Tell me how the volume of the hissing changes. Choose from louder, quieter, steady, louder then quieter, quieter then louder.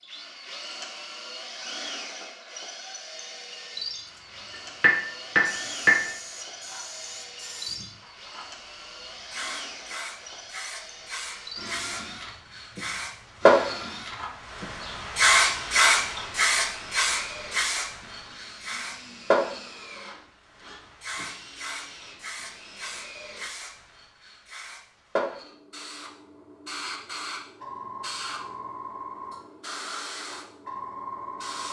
louder then quieter.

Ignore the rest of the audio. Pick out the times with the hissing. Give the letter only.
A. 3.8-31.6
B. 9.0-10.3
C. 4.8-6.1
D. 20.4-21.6
A.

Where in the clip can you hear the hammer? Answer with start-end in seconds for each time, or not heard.
4.8-6.1.